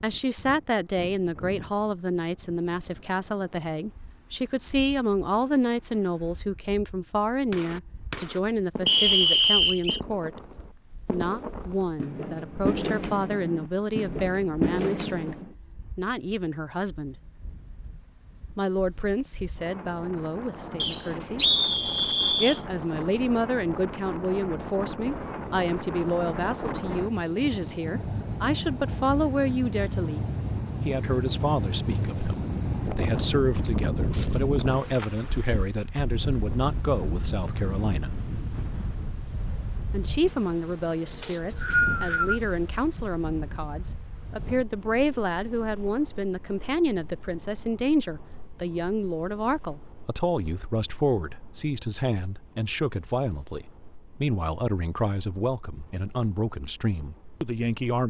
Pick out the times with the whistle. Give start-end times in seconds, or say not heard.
8.8-10.0, 20.8-22.6, 41.2-42.4.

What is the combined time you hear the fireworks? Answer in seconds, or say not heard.
8 s.